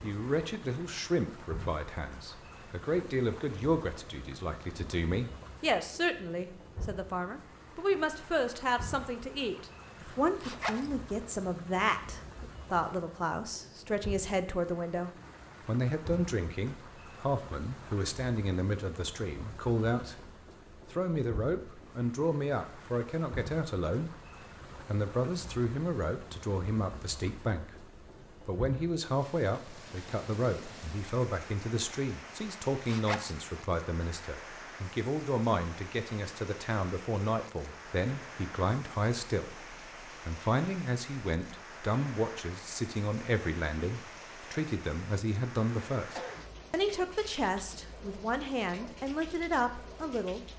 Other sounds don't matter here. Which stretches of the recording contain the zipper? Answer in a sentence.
The zipper can be heard from 10.4 to 10.9 s and from 32.9 to 33.4 s.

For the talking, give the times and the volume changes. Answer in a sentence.
The talking can be heard from 0.0 to 50.4 s, at a steady volume.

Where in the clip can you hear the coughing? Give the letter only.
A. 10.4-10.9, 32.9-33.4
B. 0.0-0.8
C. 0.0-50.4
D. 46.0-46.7
D.